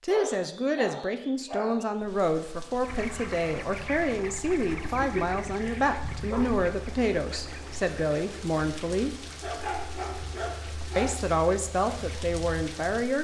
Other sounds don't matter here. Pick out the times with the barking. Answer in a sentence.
You can hear the barking from 0.1 to 1.9 s, from 4.9 to 6.7 s and from 9.4 to 11.2 s.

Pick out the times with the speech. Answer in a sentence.
You can hear the speech from 0.0 to 9.2 s and from 10.9 to 13.1 s.